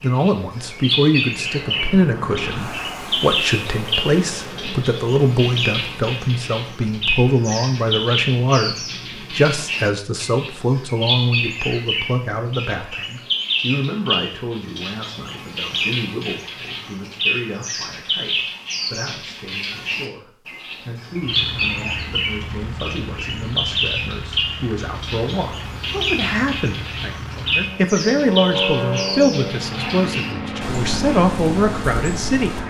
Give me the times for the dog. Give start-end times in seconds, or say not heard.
not heard.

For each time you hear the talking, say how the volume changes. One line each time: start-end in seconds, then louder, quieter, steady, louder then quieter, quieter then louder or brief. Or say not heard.
0.0-32.5 quieter then louder.